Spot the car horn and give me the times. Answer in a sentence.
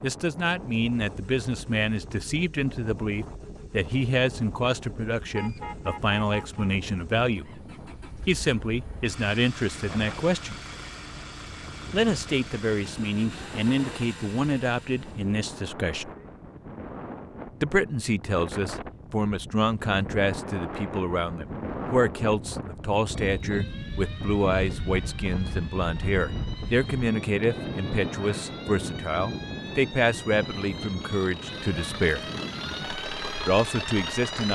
You can hear the car horn from 5.3 to 6.7 s.